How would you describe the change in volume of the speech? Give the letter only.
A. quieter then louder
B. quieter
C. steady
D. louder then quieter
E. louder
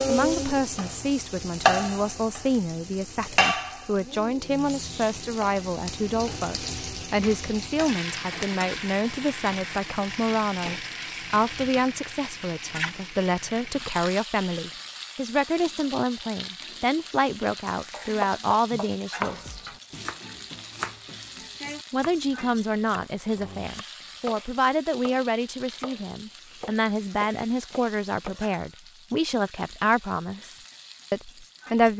C.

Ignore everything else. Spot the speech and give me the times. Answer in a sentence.
You can hear the speech from 0.1 to 19.7 s and from 21.9 to 31.9 s.